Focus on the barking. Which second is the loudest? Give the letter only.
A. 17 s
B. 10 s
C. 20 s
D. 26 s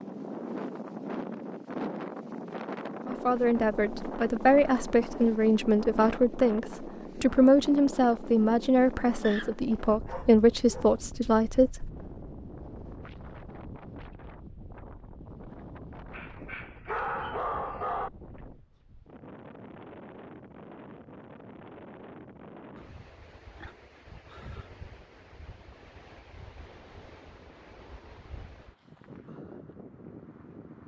A.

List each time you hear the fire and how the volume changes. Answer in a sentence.
The fire can't be heard in this clip.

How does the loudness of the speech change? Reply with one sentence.
The volume of the speech stays about the same.